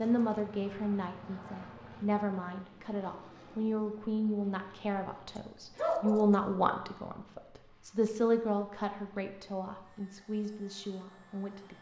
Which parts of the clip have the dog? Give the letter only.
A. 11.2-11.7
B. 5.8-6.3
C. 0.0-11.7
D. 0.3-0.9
B.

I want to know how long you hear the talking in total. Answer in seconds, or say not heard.
12 s.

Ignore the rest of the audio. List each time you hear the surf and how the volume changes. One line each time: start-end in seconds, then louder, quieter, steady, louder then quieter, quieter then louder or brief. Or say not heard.
not heard.